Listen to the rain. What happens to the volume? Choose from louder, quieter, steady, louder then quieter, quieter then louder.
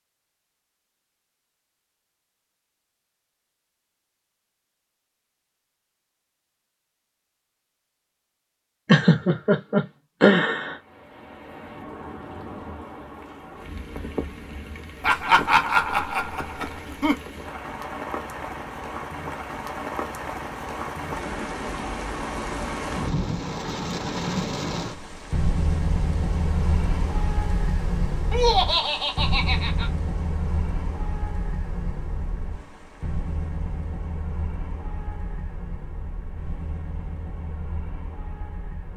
louder then quieter.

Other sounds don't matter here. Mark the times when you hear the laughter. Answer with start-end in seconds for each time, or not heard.
8.8-10.8, 15.0-17.1, 28.3-29.9.